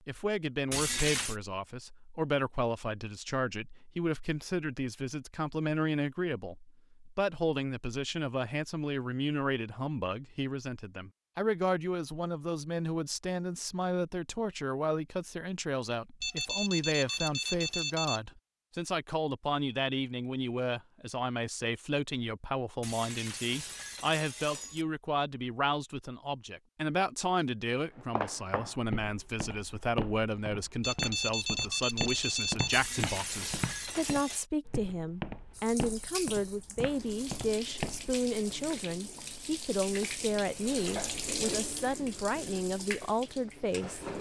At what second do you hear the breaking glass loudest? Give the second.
1 s.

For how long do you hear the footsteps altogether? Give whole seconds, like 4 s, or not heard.
10 s.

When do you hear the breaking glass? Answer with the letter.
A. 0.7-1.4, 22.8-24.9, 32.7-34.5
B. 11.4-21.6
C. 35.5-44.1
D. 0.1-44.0
A.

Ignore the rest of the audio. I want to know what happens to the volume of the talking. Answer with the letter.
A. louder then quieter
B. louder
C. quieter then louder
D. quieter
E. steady
E.